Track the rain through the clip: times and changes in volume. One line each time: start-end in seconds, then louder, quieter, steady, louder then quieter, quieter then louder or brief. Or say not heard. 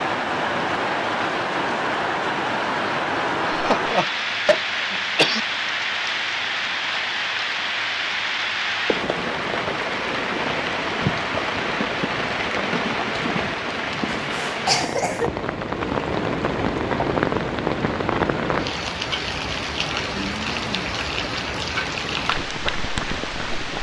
0.0-23.7 steady.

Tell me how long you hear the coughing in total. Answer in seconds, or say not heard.
3 s.